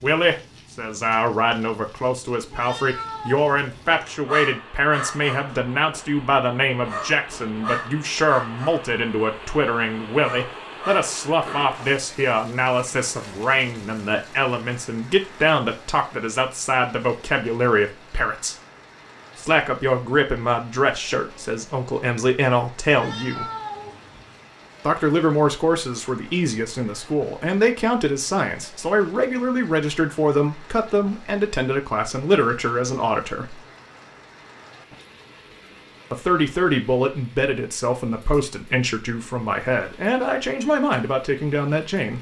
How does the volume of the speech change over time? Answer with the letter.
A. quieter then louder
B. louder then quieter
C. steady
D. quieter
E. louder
C.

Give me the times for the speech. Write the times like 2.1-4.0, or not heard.
0.0-18.6, 19.4-23.4, 24.9-33.6, 36.1-42.1.